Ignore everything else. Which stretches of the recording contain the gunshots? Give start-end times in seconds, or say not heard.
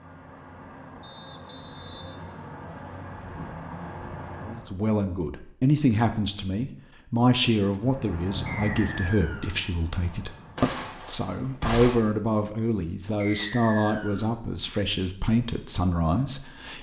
10.0-11.9.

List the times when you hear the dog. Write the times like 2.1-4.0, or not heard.
not heard.